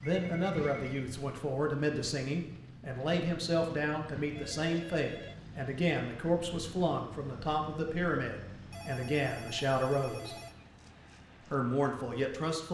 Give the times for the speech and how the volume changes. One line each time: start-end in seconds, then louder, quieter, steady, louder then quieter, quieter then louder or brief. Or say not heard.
0.0-10.3 steady
11.5-12.6 brief.